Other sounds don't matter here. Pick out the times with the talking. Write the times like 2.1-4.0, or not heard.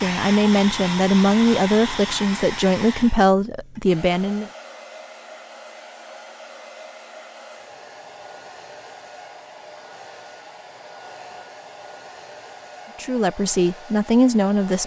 0.0-4.5, 13.0-14.8.